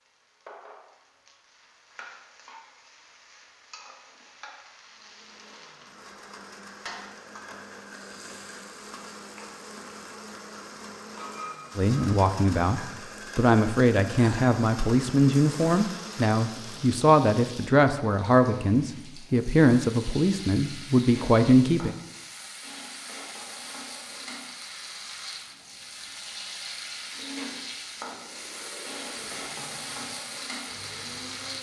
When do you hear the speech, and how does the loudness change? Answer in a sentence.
You can hear the speech from 11.8 to 21.9 s, at a steady volume.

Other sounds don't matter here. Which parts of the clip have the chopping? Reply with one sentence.
You can't hear the chopping here.